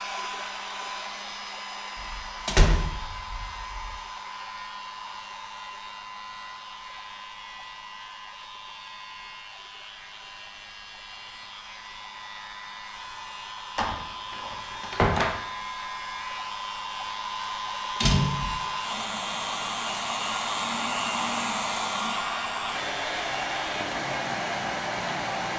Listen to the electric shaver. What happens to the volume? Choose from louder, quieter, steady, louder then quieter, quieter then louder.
louder.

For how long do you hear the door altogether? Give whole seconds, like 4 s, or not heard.
4 s.